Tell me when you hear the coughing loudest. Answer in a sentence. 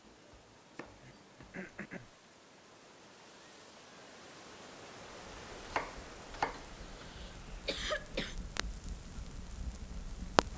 The loudest moment of the coughing is at 8 seconds.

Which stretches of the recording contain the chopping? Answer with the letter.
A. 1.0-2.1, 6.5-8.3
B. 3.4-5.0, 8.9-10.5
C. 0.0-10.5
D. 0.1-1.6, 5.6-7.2
D.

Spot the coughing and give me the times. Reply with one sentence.
The coughing can be heard from 1.0 to 2.1 s and from 6.5 to 8.3 s.